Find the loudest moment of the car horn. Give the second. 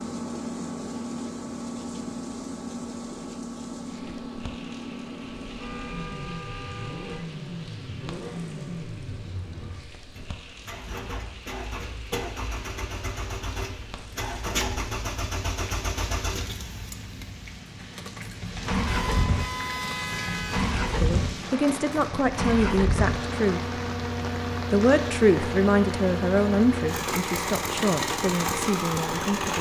20 s.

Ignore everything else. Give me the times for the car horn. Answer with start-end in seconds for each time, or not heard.
5.4-7.2, 18.9-20.6.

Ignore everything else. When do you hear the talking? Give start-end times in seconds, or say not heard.
21.0-23.6, 24.7-29.5.